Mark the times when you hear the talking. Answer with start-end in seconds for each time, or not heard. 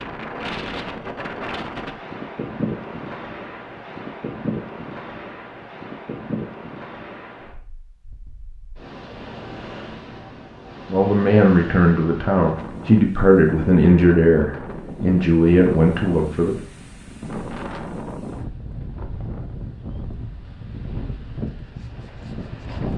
10.9-16.6.